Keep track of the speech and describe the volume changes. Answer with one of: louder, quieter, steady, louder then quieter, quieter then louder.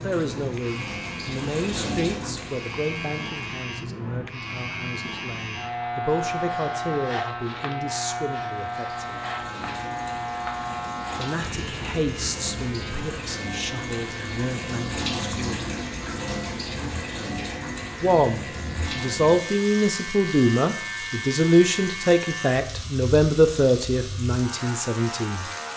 louder.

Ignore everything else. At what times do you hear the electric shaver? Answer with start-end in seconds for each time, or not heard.
0.0-25.7.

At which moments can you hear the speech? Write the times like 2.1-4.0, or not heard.
0.0-9.2, 11.2-15.7, 18.0-25.4.